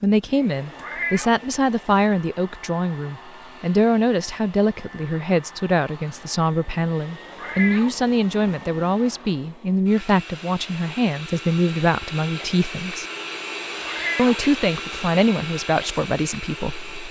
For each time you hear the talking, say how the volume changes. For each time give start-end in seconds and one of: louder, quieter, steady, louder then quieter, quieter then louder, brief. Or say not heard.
0.0-13.1 steady
14.2-17.0 brief.